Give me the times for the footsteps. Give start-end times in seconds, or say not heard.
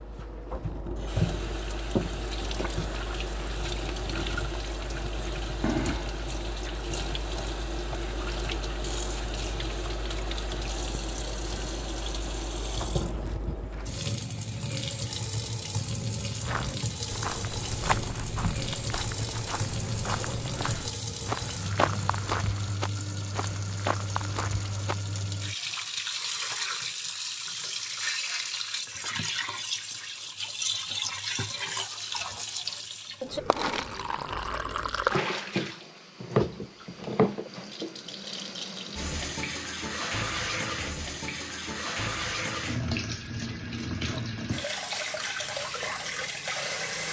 16.4-25.2.